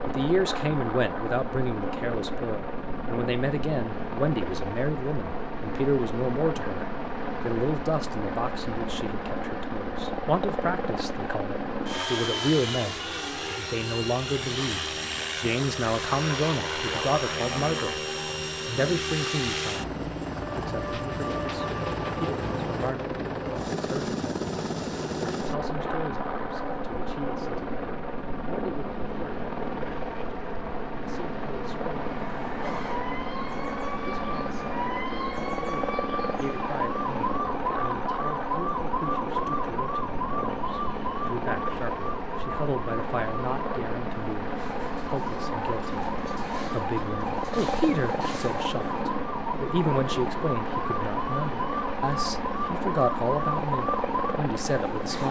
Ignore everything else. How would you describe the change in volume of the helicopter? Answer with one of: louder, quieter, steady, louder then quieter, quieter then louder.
steady.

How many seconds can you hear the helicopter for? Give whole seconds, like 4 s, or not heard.
55 s.